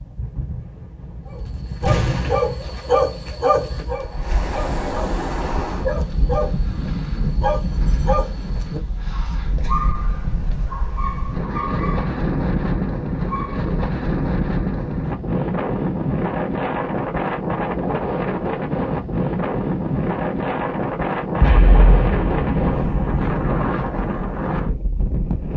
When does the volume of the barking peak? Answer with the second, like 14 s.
3 s.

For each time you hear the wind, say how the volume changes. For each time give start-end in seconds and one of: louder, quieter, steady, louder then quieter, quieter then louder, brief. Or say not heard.
0.0-25.5 louder.